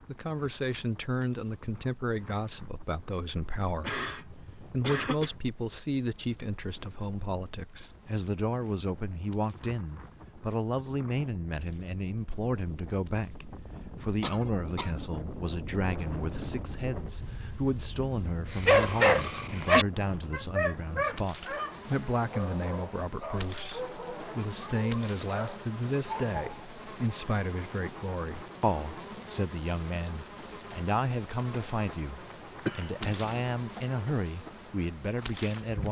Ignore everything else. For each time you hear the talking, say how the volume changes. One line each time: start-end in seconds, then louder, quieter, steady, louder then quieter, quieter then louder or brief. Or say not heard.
0.1-35.8 steady.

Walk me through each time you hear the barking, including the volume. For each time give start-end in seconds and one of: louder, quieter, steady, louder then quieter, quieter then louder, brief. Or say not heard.
18.5-26.6 quieter.